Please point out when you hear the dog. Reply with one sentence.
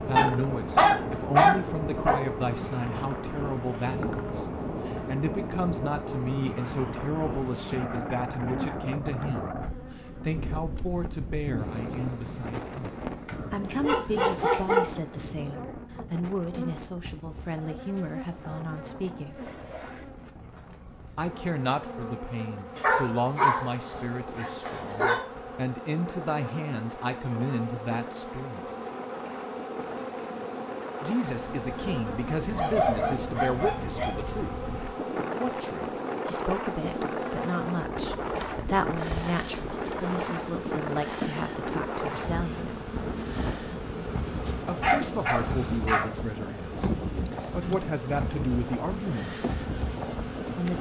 The dog can be heard from 0.1 to 2.1 s, from 13.2 to 14.8 s, from 22.8 to 25.2 s, from 32.5 to 34.1 s and from 44.8 to 46.0 s.